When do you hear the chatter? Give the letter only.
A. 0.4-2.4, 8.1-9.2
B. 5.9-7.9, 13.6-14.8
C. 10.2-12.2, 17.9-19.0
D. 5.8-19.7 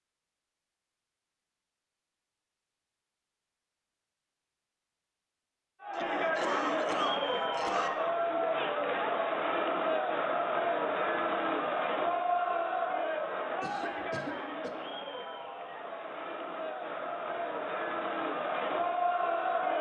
D.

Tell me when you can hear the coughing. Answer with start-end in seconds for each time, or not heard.
5.9-7.9, 13.6-14.8.